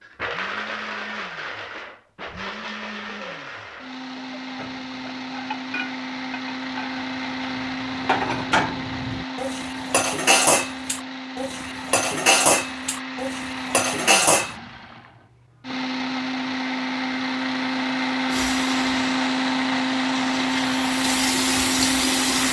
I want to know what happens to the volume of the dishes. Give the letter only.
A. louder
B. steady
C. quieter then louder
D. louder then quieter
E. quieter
A.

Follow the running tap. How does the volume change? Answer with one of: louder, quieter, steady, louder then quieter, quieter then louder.
quieter then louder.